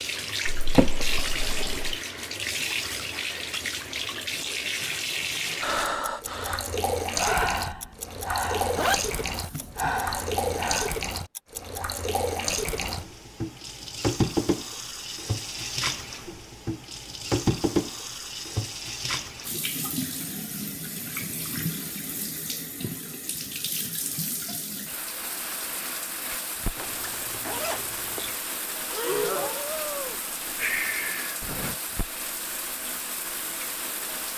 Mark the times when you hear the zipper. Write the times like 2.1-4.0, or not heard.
8.8-9.7, 26.8-28.4.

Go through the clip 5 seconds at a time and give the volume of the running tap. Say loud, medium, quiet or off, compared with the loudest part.
loud, loud, loud, loud, medium, medium, medium.